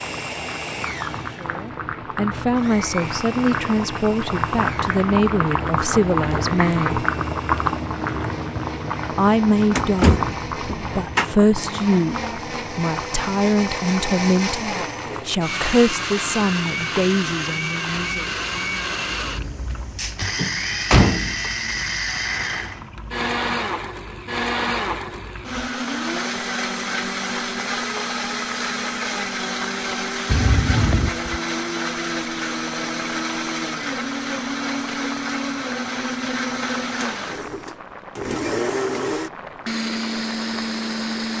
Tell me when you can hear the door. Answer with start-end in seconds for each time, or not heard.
9.8-11.2, 20.4-21.5, 30.2-31.3.